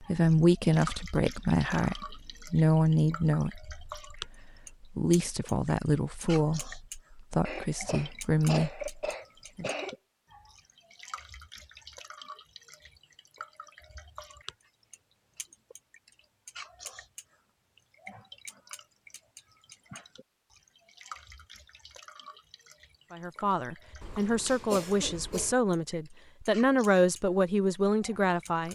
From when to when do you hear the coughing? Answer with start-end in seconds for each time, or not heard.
7.5-9.9, 24.0-25.6.